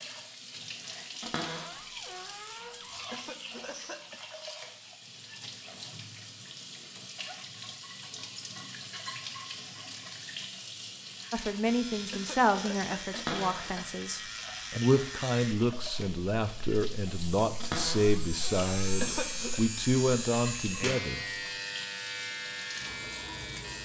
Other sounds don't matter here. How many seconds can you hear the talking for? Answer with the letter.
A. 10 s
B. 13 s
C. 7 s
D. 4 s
A.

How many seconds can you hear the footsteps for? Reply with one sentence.
The footsteps can't be heard in this clip.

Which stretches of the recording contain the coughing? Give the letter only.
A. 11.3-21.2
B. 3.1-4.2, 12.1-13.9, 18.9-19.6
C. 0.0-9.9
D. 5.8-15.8
B.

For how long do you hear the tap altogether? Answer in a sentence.
The tap can be heard for 24 seconds in total.